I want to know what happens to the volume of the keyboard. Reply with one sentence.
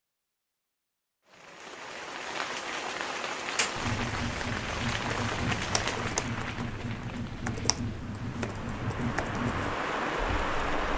The volume of the keyboard stays about the same.